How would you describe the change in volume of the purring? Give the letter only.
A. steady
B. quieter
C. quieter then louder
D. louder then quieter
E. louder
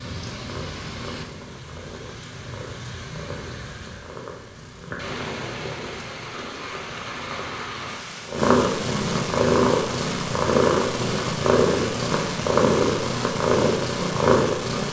E.